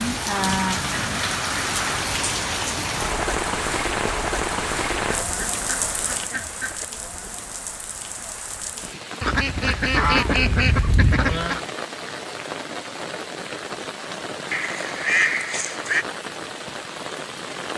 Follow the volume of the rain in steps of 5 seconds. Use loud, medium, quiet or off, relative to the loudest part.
loud, medium, medium, medium.